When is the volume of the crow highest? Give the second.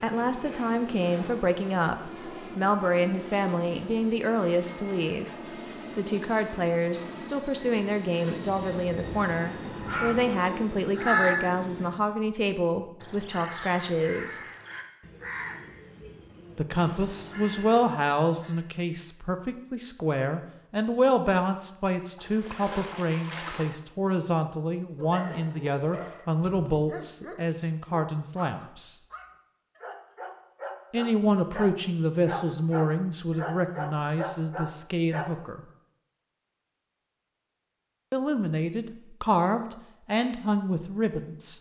11 s.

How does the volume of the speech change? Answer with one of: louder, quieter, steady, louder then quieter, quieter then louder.
steady.